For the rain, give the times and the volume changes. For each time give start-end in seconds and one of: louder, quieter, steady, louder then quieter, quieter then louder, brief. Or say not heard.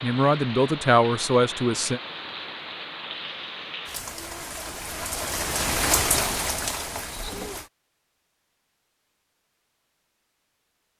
0.0-7.7 louder.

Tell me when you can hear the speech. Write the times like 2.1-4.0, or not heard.
0.0-2.0.